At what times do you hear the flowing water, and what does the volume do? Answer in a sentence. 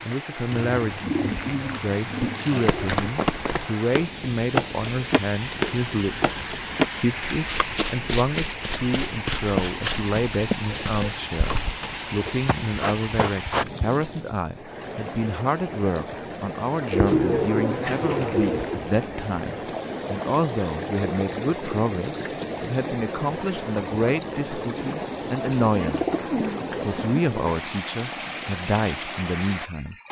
You can hear the flowing water from 0.0 to 30.0 s, at a steady volume.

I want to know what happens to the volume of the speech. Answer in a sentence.
The volume of the speech stays about the same.